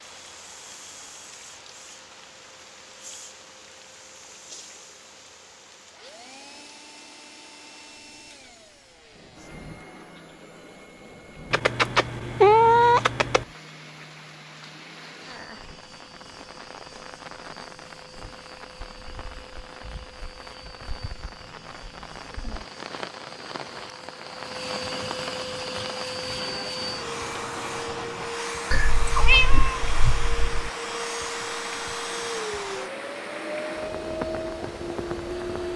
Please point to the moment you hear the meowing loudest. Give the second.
13 s.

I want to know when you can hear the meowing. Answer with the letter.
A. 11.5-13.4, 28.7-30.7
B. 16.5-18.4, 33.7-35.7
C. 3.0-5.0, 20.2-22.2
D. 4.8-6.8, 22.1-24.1
A.